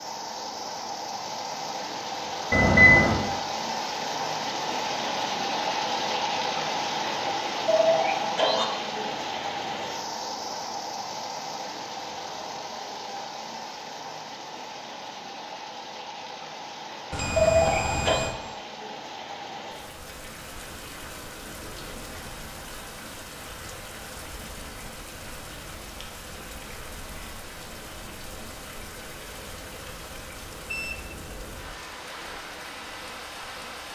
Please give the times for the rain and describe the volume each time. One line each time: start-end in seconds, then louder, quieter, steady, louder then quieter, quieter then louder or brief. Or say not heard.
0.0-33.8 quieter.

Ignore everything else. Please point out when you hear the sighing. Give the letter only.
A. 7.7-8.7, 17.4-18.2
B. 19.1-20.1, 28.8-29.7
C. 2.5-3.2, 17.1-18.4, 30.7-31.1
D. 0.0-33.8
A.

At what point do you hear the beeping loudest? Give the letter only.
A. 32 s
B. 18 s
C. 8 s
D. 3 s
D.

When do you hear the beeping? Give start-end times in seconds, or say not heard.
2.5-3.2, 17.1-18.4, 30.7-31.1.